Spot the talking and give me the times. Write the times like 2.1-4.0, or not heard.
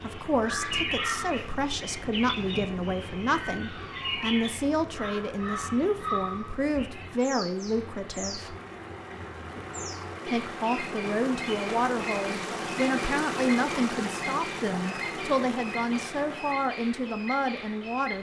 0.0-8.6, 10.2-18.1.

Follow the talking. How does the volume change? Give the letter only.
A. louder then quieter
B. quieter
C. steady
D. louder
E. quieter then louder
C.